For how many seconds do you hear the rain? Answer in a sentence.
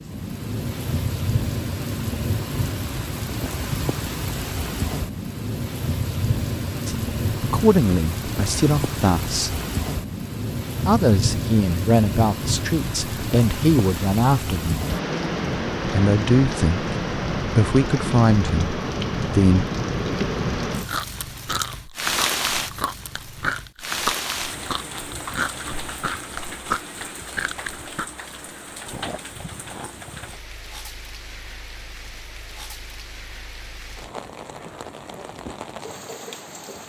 The rain can be heard for 37 seconds in total.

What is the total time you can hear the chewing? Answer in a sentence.
You can hear the chewing for 9 seconds altogether.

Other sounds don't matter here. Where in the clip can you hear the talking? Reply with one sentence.
You can hear the talking from 6.8 to 9.6 s, from 10.8 to 14.8 s and from 15.8 to 19.6 s.